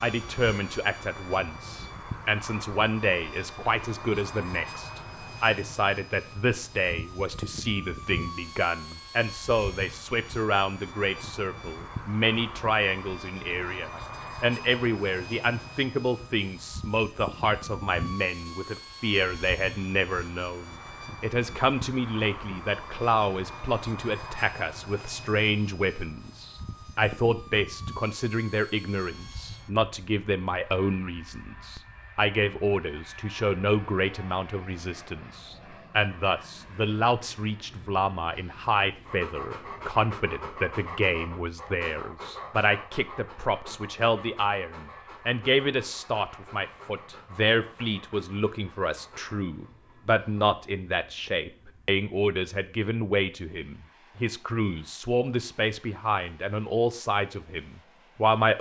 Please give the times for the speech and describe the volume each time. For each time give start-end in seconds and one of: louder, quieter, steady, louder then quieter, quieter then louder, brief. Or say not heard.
0.0-58.5 steady.